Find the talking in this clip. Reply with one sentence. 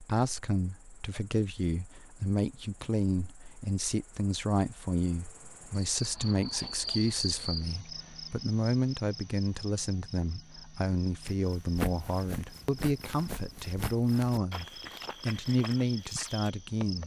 The talking can be heard from 0.0 to 17.0 s.